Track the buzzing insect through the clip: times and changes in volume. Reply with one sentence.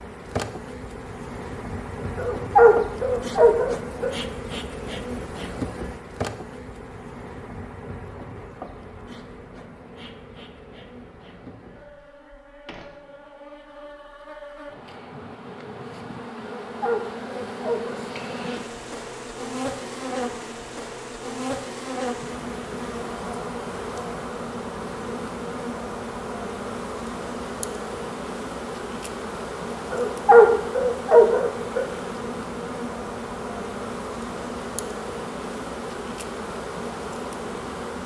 You can hear the buzzing insect from 0.0 to 38.0 s, getting quieter then louder.